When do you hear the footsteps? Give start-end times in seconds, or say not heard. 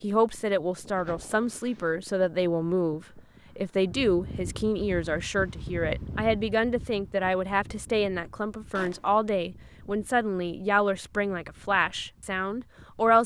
not heard.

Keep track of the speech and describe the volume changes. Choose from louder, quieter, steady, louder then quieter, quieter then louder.
steady.